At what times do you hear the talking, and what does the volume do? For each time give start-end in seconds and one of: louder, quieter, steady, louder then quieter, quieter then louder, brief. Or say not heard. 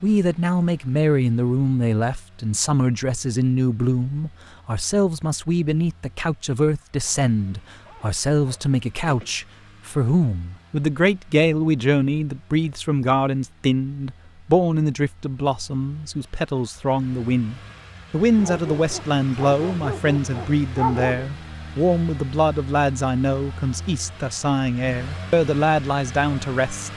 0.0-26.9 steady.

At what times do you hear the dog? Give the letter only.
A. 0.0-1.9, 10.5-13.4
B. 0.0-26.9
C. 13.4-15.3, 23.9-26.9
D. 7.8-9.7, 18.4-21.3
D.